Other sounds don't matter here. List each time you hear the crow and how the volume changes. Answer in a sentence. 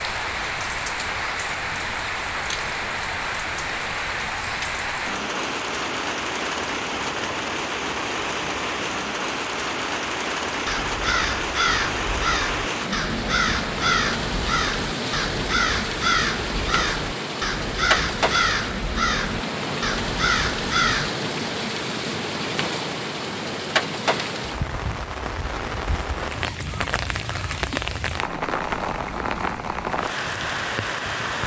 You can hear the crow from 10.7 to 21.1 s, at a steady volume.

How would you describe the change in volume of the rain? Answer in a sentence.
The volume of the rain stays about the same.